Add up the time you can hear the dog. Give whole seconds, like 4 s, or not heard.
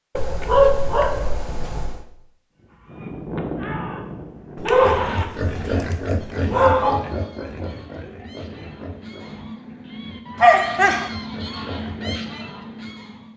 5 s.